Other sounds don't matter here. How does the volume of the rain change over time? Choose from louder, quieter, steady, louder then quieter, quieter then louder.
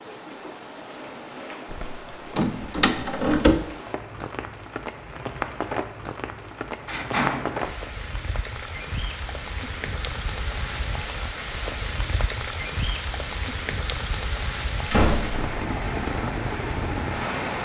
louder.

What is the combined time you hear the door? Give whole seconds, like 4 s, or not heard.
3 s.